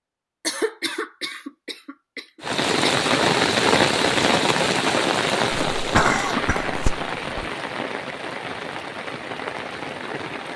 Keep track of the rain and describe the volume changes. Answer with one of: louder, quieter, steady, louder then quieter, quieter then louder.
quieter.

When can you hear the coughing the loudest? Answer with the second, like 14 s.
6 s.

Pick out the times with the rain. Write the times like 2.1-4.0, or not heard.
2.4-10.5.